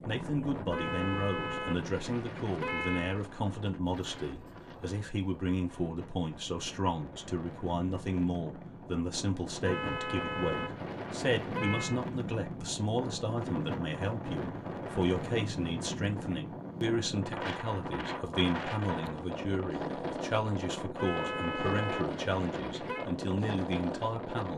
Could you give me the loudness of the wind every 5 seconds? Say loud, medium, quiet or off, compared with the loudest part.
medium, medium, loud, loud, loud.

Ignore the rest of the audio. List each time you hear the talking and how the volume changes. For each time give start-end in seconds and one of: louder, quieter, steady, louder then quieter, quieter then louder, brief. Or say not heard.
0.1-24.5 steady.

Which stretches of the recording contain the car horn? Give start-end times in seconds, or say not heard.
0.7-3.2, 9.6-12.0, 20.9-23.1.